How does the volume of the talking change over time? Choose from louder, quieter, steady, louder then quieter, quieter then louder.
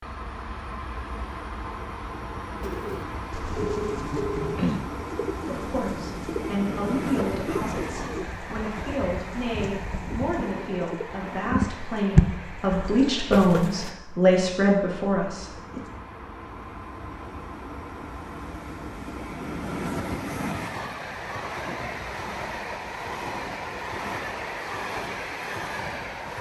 louder.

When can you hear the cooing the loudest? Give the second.
12 s.